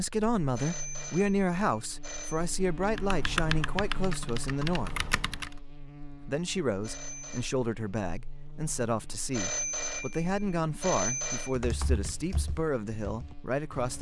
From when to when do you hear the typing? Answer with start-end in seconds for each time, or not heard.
2.9-5.5, 11.6-13.9.